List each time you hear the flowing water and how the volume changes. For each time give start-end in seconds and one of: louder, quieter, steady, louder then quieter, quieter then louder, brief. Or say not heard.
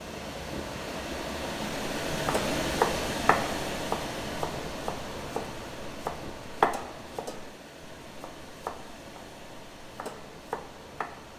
0.0-11.3 quieter.